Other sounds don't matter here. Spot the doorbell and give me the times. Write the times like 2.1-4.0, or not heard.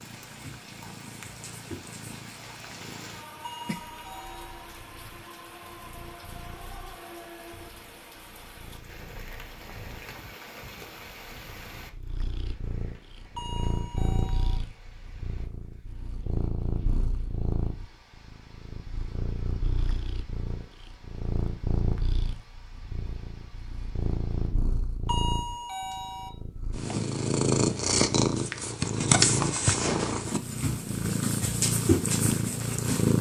3.4-4.7, 13.3-14.6, 25.1-26.3.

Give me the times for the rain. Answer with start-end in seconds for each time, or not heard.
0.0-24.6.